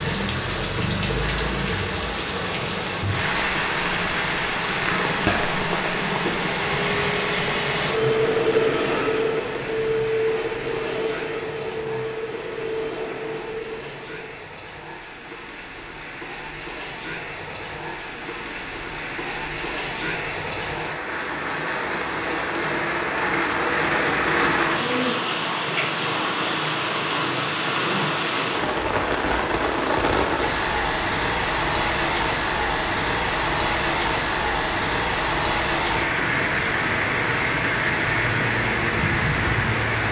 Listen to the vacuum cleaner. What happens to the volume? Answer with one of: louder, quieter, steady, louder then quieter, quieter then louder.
louder then quieter.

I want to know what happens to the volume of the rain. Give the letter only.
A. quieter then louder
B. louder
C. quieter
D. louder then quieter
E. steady
A.